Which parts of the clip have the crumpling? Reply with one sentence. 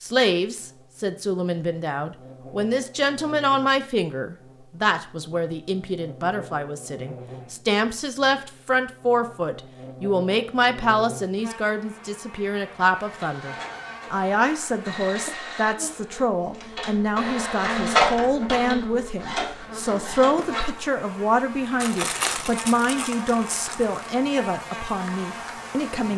The crumpling can be heard from 21.8 to 24.0 s.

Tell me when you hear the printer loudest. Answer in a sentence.
The volume of the printer peaks at 18 seconds.